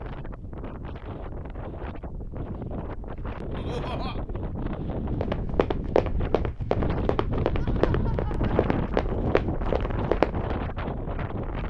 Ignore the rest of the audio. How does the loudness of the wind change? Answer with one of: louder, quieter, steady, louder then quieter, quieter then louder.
louder.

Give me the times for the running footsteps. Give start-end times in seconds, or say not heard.
5.2-10.6.